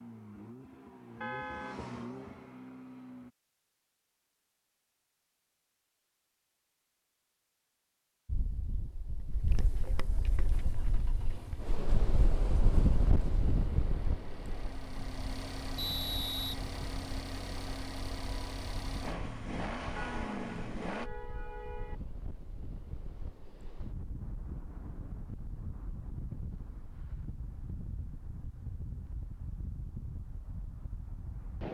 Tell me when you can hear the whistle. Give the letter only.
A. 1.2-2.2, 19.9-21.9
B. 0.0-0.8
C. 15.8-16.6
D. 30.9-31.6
C.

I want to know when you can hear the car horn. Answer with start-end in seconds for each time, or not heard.
1.2-2.2, 19.9-21.9.